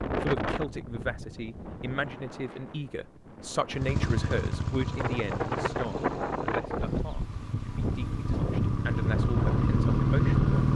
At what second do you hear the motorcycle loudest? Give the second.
10 s.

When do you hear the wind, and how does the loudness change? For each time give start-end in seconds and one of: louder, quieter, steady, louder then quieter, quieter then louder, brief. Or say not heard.
0.0-10.7 quieter then louder.